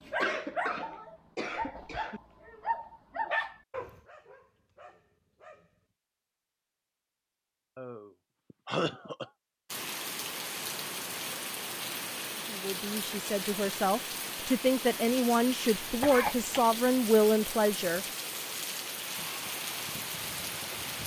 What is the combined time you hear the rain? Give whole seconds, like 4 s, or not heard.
11 s.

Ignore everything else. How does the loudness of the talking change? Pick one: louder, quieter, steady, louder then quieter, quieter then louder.
louder.